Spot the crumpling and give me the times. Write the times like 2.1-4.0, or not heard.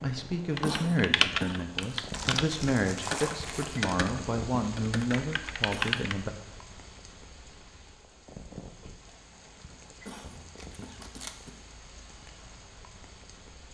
1.8-3.8, 10.6-11.4.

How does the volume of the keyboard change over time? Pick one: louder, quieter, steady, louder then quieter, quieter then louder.
quieter.